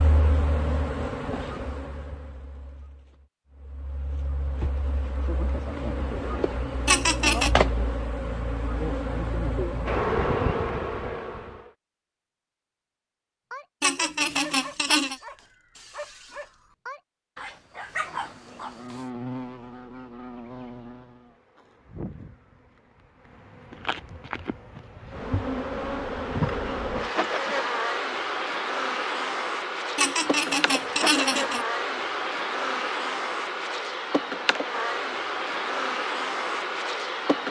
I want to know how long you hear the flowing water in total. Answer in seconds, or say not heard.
not heard.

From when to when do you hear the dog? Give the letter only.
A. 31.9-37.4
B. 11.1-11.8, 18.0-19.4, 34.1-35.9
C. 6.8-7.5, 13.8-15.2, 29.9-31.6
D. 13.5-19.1
D.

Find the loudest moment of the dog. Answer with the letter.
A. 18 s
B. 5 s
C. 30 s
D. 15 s
A.